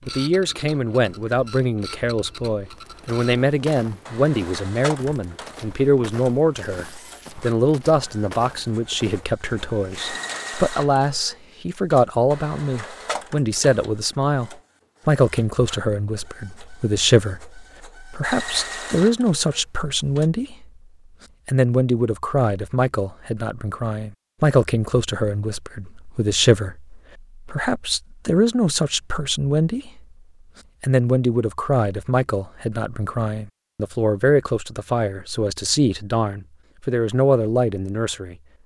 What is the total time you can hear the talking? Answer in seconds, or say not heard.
37 s.